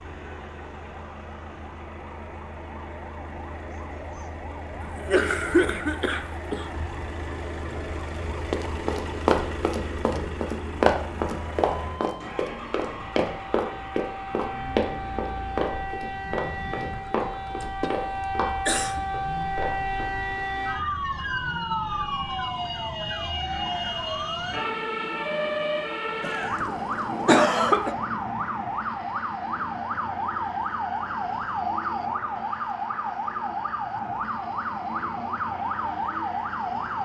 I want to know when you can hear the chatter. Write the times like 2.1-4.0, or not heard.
not heard.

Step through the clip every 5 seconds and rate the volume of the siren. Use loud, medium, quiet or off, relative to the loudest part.
quiet, quiet, medium, loud, loud, loud, loud, loud.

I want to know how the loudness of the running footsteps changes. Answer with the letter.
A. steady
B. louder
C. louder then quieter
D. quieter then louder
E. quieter
E.